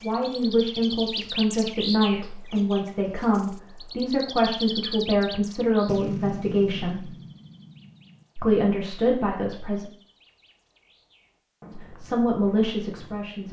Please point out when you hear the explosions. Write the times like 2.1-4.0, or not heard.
5.8-8.2.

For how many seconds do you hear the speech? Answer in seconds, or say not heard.
10 s.